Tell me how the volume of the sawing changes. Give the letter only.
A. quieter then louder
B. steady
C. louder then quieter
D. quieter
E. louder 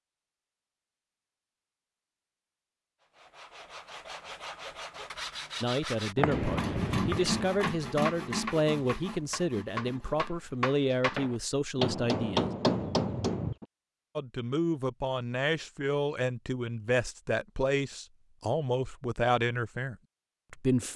C.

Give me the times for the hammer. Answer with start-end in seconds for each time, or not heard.
6.2-13.7.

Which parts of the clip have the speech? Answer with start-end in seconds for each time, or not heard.
5.6-12.5, 14.2-20.9.